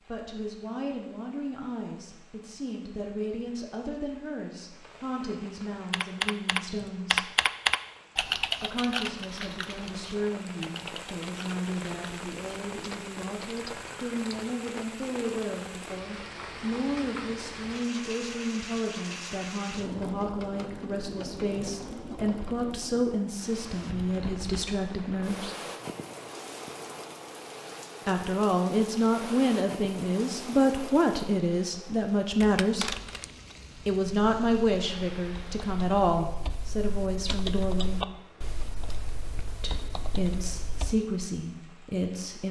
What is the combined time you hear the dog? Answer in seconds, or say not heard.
not heard.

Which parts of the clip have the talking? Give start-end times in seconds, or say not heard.
0.1-7.3, 8.6-25.6, 28.1-33.0, 33.9-38.0, 39.6-42.4.